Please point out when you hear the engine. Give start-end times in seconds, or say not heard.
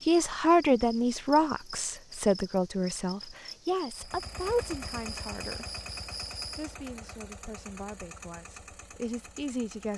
4.0-9.9.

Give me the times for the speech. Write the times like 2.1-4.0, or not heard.
0.1-5.7, 6.5-9.9.